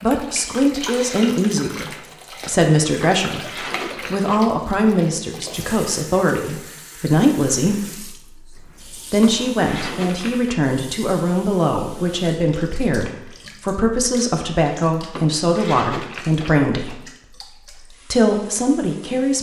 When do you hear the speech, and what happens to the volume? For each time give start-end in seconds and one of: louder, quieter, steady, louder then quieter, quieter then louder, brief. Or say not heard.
0.0-19.3 steady.